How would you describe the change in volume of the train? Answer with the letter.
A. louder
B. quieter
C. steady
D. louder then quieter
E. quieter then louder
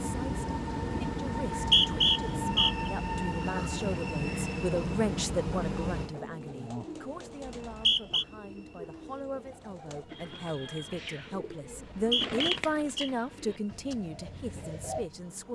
B.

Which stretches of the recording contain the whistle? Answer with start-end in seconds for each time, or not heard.
1.6-2.9, 7.5-8.2, 11.7-13.1.